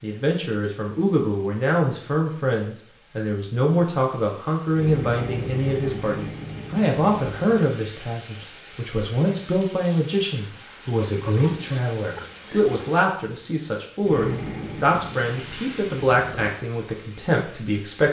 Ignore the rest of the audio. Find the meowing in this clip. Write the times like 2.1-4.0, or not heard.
not heard.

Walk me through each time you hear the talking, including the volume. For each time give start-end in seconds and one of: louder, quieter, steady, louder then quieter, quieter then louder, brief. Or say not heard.
0.0-18.0 steady.